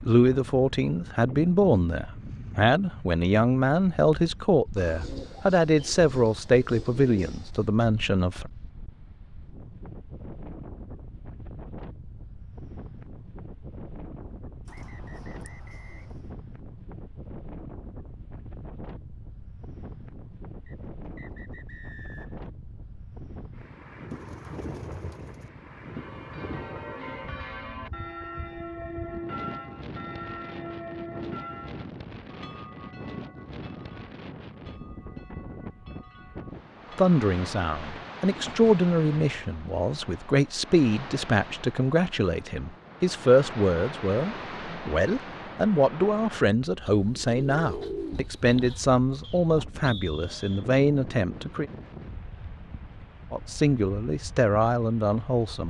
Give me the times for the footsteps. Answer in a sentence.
The footsteps can't be heard in this clip.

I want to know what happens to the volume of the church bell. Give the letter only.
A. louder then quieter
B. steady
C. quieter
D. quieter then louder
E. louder
C.